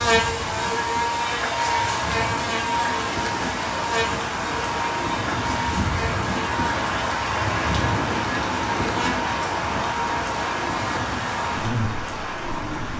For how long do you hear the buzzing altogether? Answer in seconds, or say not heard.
13 s.